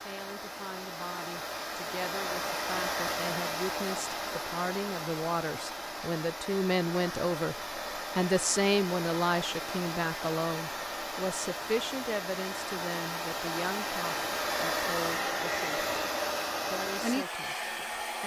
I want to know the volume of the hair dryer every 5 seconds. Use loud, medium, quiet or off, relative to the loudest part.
loud, medium, loud, loud.